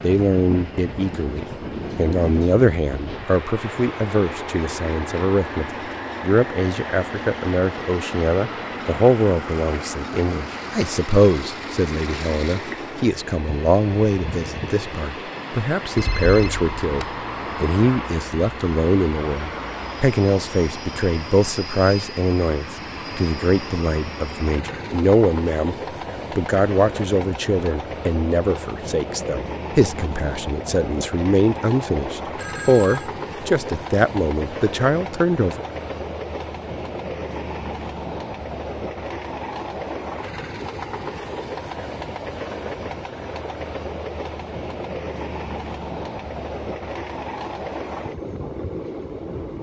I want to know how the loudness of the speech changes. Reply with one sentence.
The volume of the speech stays about the same.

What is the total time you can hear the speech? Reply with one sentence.
The speech can be heard for 35 seconds in total.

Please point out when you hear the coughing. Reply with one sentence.
You can't hear the coughing here.